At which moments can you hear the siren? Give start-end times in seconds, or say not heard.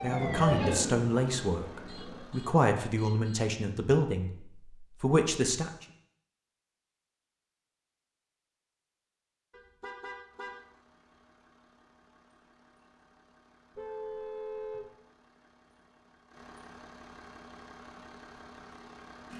0.0-2.3.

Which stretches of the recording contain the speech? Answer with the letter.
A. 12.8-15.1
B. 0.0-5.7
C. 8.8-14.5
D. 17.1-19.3
B.